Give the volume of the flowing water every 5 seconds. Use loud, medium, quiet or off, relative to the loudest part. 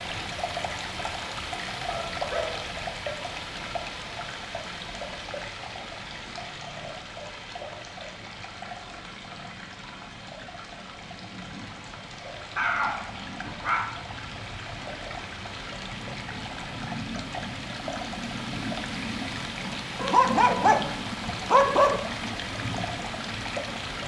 loud, medium, medium, loud, loud.